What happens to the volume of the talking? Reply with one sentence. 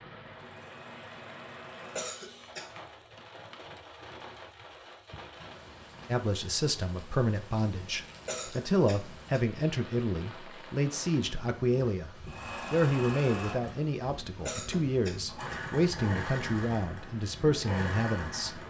The loudness of the talking stays about the same.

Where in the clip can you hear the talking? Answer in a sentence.
The talking can be heard from 6.1 to 12.1 s and from 12.7 to 18.6 s.